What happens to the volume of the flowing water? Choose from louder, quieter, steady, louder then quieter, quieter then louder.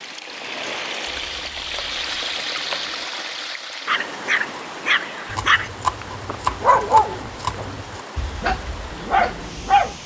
quieter.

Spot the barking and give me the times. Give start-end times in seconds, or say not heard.
3.9-9.9.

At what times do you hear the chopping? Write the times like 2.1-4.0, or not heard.
1.1-3.0, 5.2-8.1.